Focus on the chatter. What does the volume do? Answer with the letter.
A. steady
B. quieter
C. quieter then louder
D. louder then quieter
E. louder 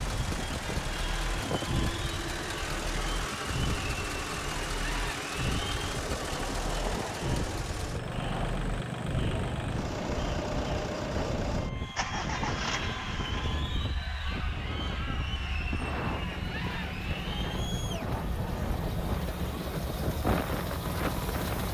A.